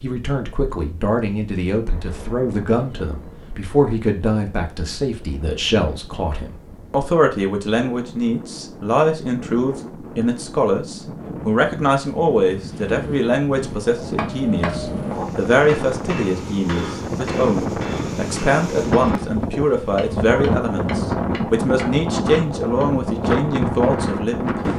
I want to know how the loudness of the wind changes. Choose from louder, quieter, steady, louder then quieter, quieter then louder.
louder.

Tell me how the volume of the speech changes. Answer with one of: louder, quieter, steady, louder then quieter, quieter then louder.
steady.